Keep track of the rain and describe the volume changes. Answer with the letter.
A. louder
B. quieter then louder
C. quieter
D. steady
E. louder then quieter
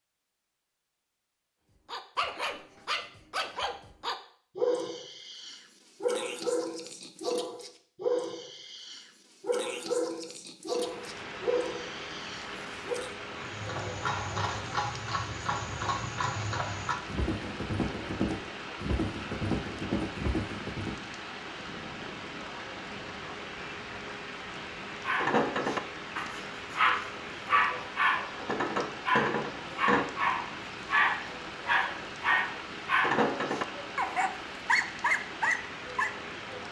D.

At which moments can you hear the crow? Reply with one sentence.
The crow can't be heard in this clip.